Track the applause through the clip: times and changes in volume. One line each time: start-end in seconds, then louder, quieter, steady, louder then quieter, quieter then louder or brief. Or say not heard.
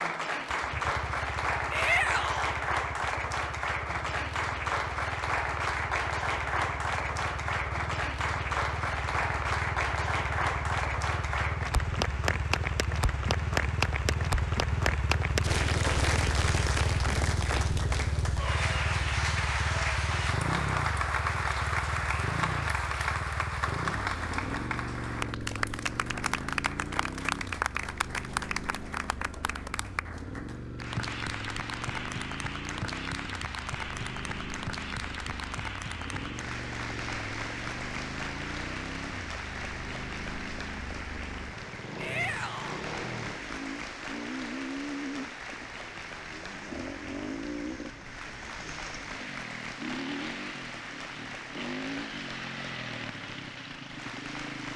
0.0-54.7 quieter.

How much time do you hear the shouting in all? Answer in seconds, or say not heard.
2 s.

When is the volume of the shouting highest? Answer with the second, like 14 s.
2 s.